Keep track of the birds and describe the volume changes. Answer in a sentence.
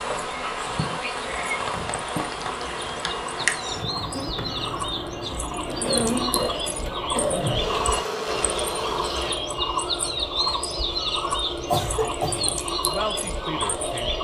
The volume of the birds goes up.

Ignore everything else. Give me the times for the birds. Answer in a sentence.
The birds can be heard from 0.0 to 14.1 s.